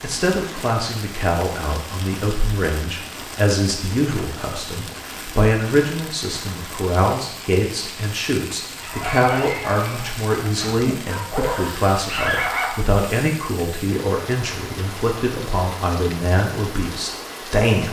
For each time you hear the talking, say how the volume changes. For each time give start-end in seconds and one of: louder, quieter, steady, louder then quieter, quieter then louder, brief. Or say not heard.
0.0-17.8 steady.